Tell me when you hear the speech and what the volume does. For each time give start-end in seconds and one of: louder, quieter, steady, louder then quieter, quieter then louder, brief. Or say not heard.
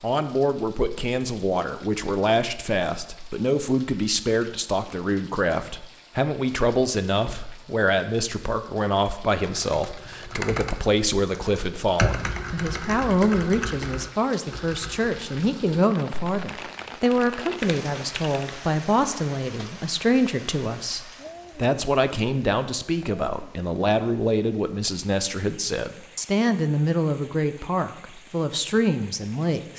0.0-29.7 steady.